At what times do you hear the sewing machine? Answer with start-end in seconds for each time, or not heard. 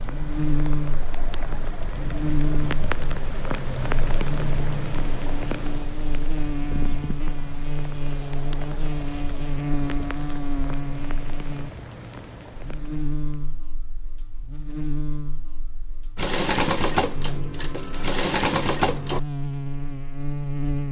16.1-19.2.